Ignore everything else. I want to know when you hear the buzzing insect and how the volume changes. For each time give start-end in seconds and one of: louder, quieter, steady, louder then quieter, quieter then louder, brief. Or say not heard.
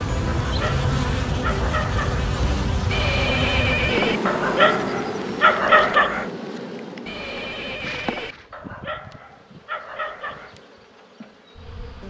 0.0-12.0 quieter.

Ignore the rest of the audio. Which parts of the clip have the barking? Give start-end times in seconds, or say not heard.
0.2-2.2, 4.2-6.3, 8.5-10.6.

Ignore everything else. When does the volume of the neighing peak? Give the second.
4 s.